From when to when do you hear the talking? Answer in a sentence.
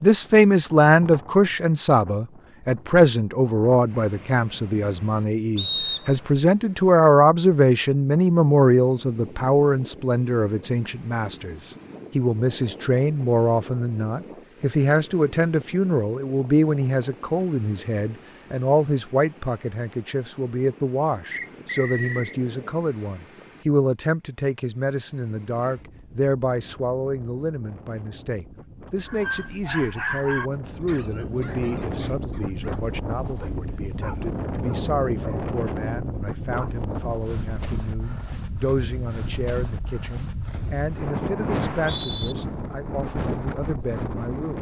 You can hear the talking from 0.0 to 44.5 s.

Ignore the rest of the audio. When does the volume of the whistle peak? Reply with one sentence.
The loudest moment of the whistle is at 6 seconds.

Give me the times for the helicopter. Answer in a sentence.
You can't hear the helicopter here.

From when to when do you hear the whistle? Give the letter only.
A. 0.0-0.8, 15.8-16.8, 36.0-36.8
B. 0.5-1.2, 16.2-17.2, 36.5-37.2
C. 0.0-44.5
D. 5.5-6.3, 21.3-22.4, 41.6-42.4
D.